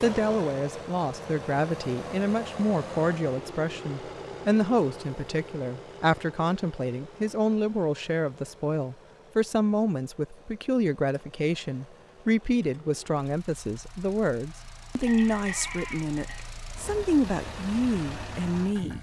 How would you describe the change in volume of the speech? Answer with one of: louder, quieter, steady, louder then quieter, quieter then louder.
steady.